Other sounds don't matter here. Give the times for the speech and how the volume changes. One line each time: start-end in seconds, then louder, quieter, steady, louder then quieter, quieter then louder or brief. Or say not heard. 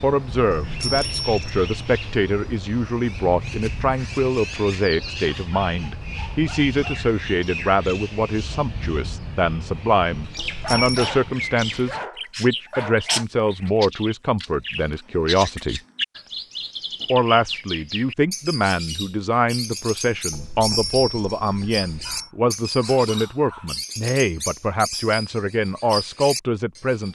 0.0-15.8 steady
17.1-27.1 steady.